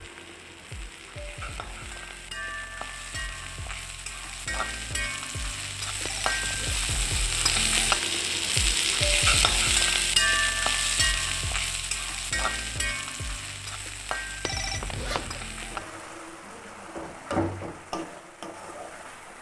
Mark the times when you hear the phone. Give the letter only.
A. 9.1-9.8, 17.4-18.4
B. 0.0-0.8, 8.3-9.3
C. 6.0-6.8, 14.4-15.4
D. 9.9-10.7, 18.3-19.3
C.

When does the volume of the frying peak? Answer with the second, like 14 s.
10 s.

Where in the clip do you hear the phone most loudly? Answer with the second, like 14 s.
15 s.